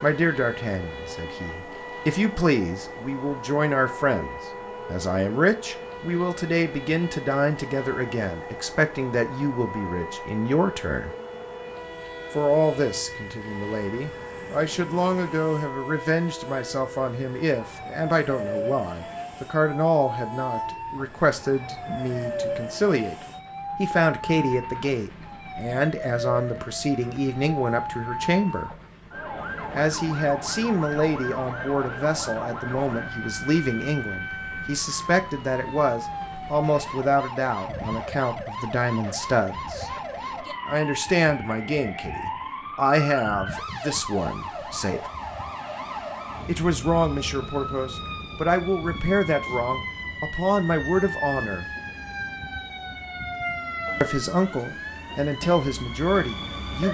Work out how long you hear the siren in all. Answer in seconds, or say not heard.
57 s.